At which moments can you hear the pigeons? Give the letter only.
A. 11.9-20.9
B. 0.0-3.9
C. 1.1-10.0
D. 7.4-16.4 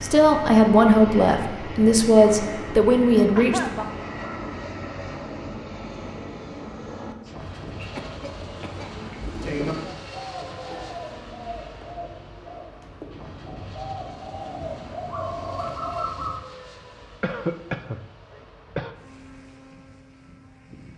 D.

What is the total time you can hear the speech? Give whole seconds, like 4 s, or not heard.
4 s.